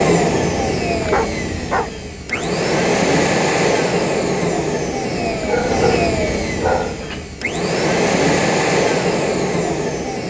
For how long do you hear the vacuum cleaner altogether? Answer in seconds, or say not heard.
10 s.